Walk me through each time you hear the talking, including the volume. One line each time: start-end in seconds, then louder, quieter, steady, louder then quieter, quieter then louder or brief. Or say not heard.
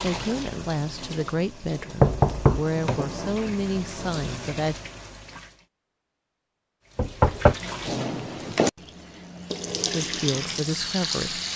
0.0-4.8 steady
9.9-11.4 brief.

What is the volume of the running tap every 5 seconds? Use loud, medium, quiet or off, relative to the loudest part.
medium, loud, loud.